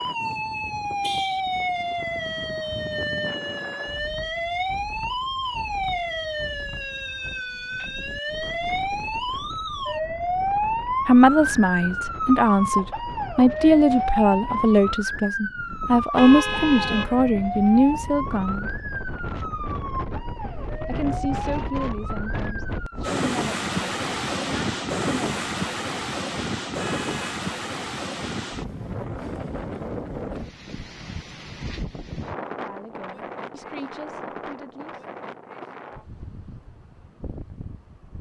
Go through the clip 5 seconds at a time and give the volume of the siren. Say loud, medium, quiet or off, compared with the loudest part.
loud, loud, loud, medium, medium, off, off, off.